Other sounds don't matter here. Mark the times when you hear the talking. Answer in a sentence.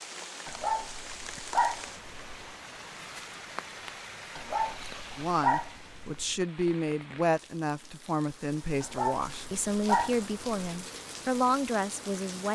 You can hear the talking from 5.2 to 12.4 s.